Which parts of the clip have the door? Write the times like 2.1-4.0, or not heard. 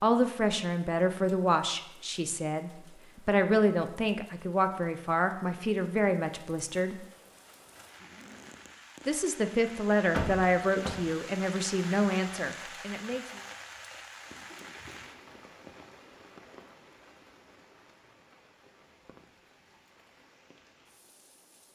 10.1-11.0.